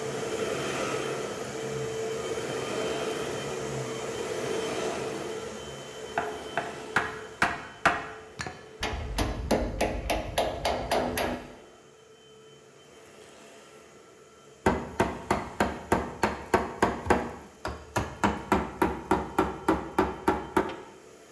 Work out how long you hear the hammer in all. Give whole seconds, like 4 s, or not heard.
11 s.